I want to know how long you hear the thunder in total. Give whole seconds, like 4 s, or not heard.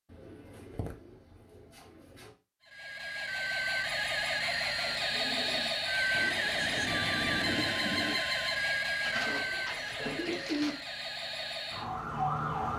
2 s.